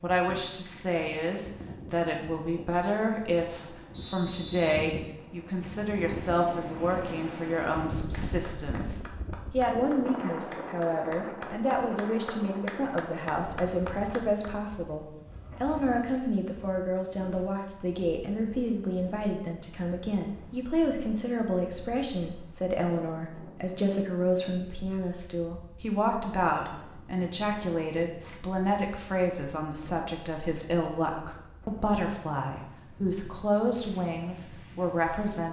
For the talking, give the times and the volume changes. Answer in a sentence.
The talking can be heard from 0.0 to 35.4 s, at a steady volume.